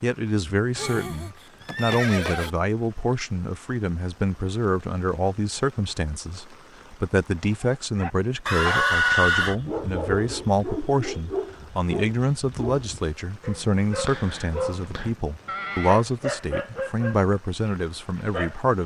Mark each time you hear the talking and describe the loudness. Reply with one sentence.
You can hear the talking from 0.0 to 18.8 s, at a steady volume.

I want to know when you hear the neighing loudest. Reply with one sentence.
The loudest moment of the neighing is at 9 seconds.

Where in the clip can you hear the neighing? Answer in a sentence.
The neighing can be heard from 0.8 to 2.5 s, from 8.4 to 9.6 s and from 14.7 to 16.1 s.